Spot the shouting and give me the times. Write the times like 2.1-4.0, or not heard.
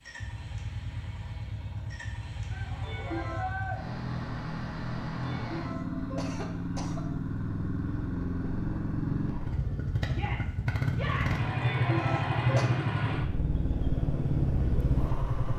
2.5-3.8, 10.1-11.4.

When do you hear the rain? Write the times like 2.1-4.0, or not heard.
not heard.